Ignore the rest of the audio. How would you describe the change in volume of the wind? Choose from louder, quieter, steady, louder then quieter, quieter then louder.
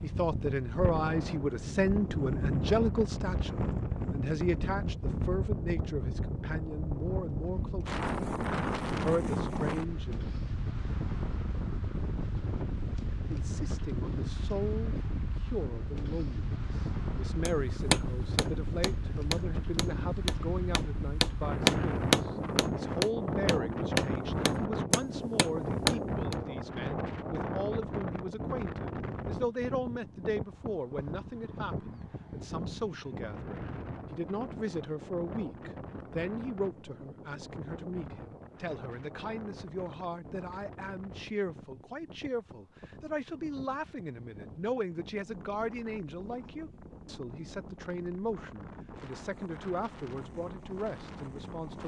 quieter.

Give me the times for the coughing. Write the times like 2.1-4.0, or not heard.
not heard.